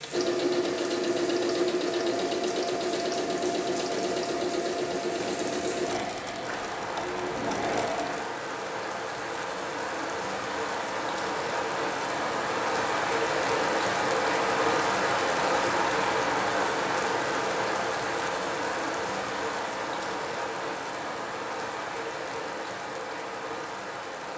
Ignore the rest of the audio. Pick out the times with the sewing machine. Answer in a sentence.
The sewing machine can be heard from 0.0 to 8.3 s.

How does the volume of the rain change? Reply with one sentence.
The volume of the rain goes up, then down.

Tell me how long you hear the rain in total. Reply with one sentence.
You can hear the rain for 24 seconds altogether.